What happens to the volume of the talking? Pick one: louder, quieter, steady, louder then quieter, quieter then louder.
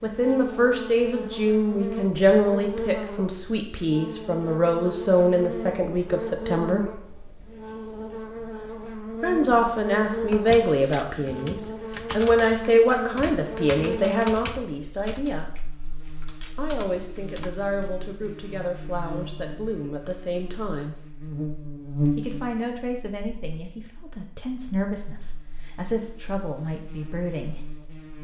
quieter.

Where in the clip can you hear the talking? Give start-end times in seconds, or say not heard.
0.0-6.9, 9.2-15.6, 16.6-21.0, 22.1-27.6.